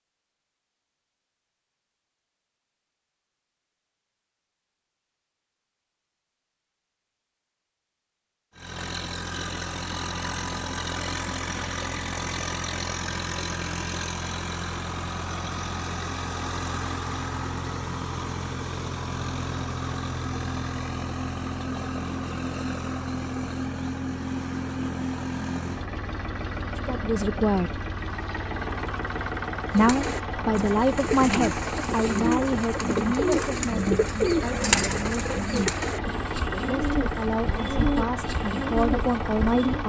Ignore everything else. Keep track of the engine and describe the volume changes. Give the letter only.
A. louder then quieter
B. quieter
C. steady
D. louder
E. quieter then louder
C.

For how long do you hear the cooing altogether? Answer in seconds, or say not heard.
10 s.